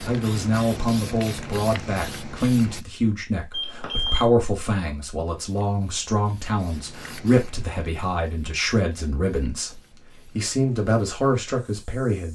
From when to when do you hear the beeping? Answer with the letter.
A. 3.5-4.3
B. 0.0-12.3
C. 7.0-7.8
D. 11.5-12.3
A.